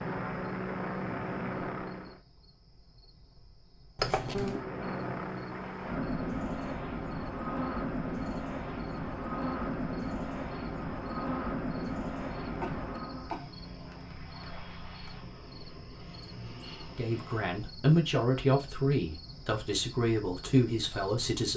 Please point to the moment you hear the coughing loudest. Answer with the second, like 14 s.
4 s.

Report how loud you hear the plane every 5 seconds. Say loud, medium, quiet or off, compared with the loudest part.
loud, loud, loud, quiet, off.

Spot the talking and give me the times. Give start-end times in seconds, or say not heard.
16.9-21.5.